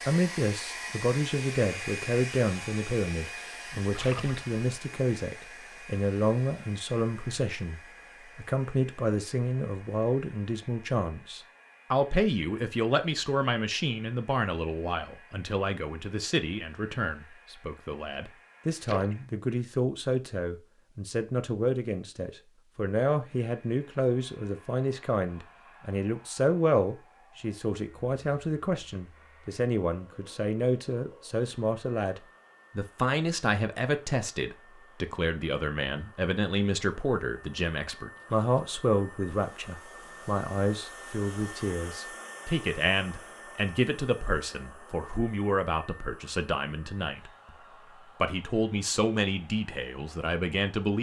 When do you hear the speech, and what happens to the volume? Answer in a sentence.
The speech can be heard from 0.1 to 47.5 s, at a steady volume; and briefly from 48.2 to 50.9 s.